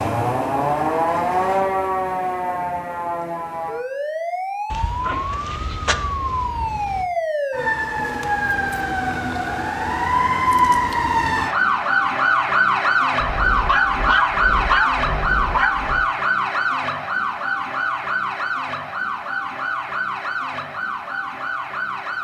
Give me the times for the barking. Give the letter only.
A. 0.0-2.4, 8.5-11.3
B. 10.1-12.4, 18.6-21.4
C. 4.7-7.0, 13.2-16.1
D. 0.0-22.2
C.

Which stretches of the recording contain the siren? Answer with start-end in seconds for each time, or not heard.
0.0-22.2.